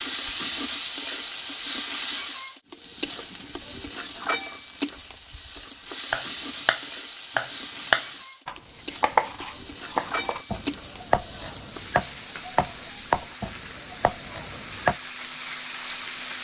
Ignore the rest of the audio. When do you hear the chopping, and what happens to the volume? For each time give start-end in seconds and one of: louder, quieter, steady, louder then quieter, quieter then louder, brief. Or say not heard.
6.1-14.9 quieter.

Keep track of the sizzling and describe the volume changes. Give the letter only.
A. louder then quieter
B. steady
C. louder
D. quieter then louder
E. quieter
E.